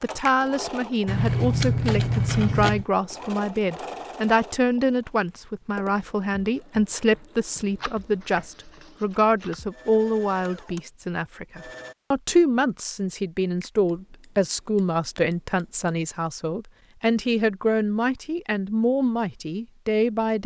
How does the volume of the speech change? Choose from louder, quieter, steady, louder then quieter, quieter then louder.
steady.